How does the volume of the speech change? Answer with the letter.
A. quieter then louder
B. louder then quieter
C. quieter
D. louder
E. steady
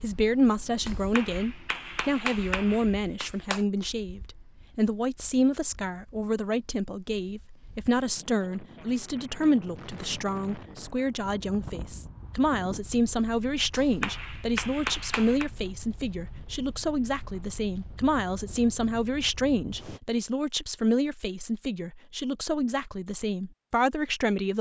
E.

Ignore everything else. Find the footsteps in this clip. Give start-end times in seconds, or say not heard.
not heard.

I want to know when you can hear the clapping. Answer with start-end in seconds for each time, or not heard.
0.8-3.6, 13.7-15.5.